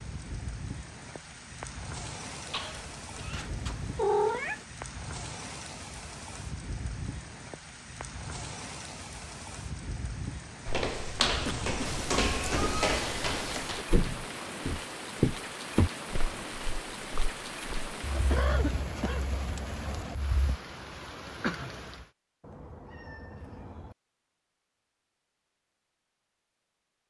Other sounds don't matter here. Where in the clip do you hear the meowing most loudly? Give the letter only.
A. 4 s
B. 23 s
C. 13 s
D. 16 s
A.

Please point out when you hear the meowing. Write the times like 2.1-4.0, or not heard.
3.3-4.7, 11.8-13.8, 22.4-23.9.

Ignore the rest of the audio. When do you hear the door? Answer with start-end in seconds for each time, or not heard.
not heard.